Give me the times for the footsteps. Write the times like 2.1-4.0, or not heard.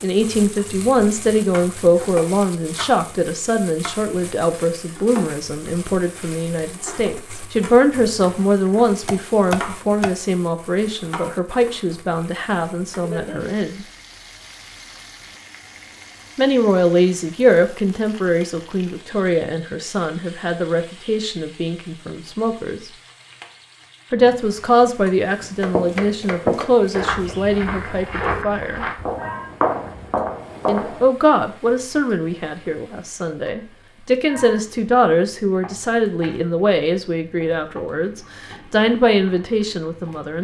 25.4-31.1.